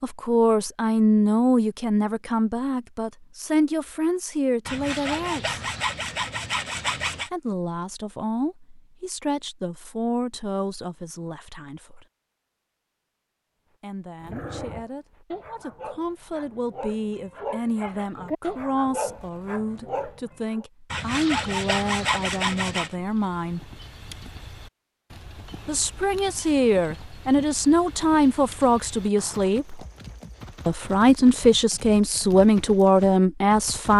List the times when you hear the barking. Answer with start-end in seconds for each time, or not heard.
14.2-20.6.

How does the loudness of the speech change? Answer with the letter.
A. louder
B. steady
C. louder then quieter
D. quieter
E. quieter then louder
E.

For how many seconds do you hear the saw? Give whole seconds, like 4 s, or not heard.
5 s.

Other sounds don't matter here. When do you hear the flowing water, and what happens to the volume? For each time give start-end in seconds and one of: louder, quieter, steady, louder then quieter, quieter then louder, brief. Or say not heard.
not heard.